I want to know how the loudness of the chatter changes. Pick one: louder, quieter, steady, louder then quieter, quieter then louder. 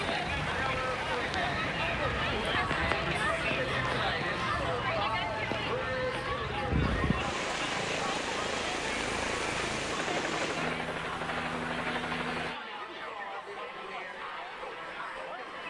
quieter.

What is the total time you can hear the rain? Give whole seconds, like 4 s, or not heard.
11 s.